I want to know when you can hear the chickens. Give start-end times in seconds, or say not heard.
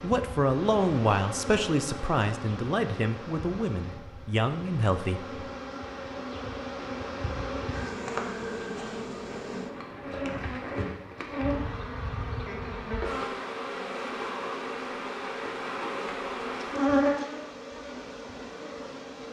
not heard.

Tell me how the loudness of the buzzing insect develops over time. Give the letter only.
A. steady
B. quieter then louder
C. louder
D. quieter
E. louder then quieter
C.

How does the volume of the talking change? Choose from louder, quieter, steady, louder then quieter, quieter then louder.
quieter.